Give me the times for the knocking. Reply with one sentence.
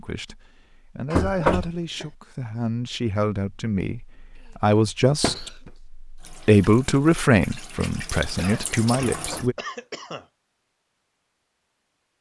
The knocking can be heard from 1.1 to 1.8 s, from 5.2 to 5.7 s and from 9.1 to 9.6 s.